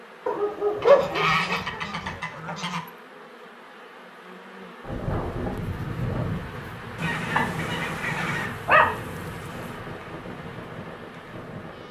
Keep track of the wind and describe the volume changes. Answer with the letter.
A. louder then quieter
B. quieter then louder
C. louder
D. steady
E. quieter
E.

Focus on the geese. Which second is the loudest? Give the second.
1 s.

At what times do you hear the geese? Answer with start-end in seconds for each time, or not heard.
0.8-2.8, 7.0-8.5.